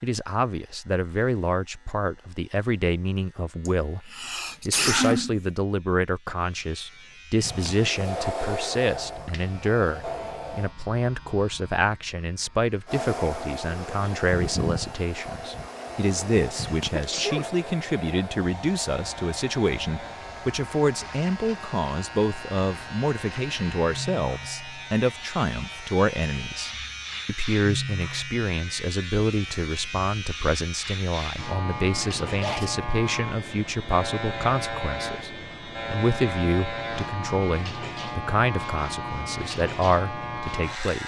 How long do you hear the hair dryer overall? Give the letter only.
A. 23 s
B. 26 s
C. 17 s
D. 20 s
C.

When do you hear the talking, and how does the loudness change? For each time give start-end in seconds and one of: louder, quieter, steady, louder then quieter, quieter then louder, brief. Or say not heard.
0.0-41.0 steady.